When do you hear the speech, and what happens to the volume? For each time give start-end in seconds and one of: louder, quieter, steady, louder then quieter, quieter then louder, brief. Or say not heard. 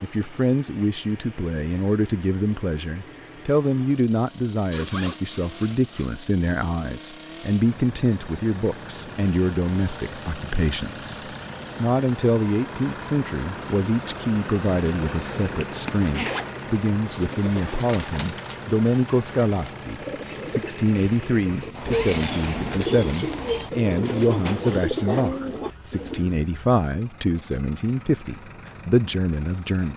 0.0-29.9 steady.